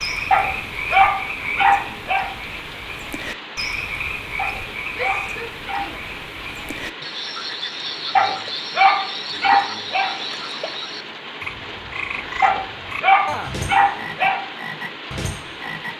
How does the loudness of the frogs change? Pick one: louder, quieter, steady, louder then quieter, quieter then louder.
steady.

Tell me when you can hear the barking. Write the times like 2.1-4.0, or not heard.
0.3-2.2, 4.3-5.8, 8.2-10.1, 12.4-14.4.